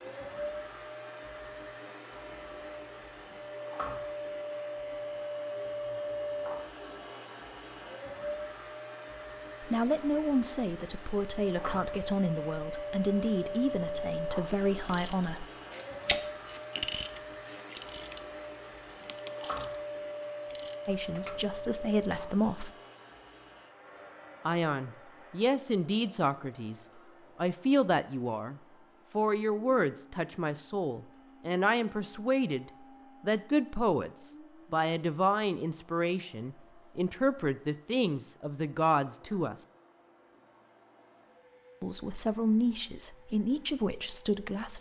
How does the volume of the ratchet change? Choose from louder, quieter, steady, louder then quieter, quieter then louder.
quieter.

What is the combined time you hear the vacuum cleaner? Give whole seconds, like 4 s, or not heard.
45 s.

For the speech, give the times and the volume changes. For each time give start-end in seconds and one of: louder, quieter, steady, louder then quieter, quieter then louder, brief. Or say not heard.
9.6-15.4 steady
20.9-22.7 brief
24.4-39.5 steady
41.8-44.7 brief.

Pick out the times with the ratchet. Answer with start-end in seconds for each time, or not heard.
14.7-21.6.